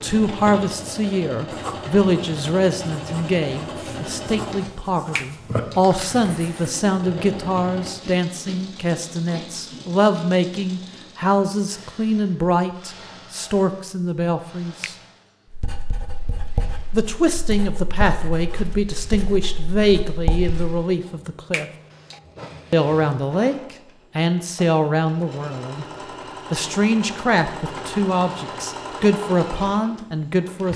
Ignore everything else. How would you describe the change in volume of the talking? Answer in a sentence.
The volume of the talking stays about the same.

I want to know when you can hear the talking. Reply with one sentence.
You can hear the talking from 0.0 to 14.9 s, from 16.9 to 21.6 s, from 22.7 to 25.9 s and from 26.5 to 30.7 s.